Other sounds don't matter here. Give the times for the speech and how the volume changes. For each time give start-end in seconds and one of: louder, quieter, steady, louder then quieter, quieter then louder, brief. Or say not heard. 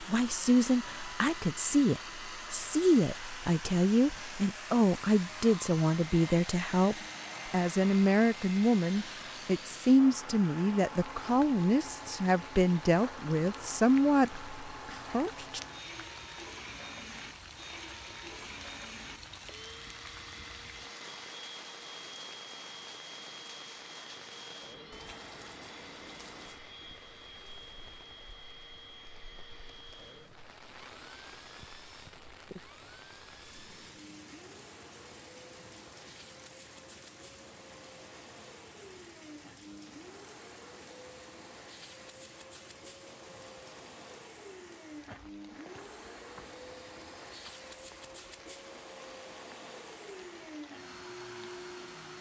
0.0-15.6 steady.